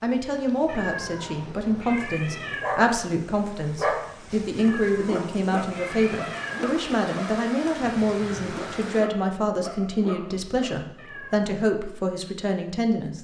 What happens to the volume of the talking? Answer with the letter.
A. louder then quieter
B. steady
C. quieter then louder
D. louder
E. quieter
B.